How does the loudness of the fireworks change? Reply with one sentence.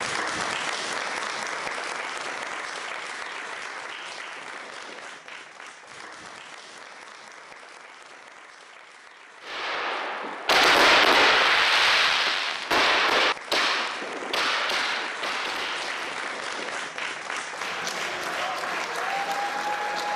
The loudness of the fireworks goes down.